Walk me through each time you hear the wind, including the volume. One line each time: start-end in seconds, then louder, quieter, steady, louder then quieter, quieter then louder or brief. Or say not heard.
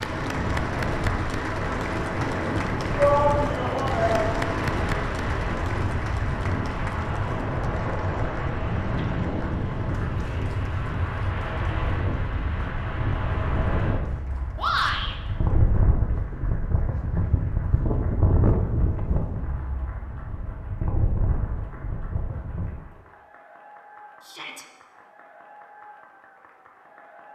0.0-22.8 steady.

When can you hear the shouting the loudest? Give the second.
3 s.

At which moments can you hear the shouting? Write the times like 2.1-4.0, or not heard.
3.0-4.5, 14.6-15.2, 24.2-24.6.